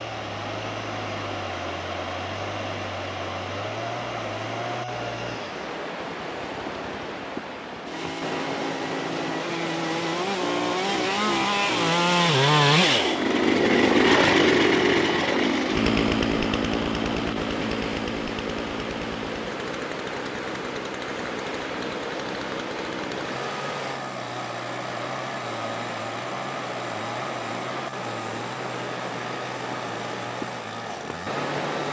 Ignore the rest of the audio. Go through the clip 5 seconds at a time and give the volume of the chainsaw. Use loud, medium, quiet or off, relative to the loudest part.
quiet, quiet, loud, medium, quiet, quiet, quiet.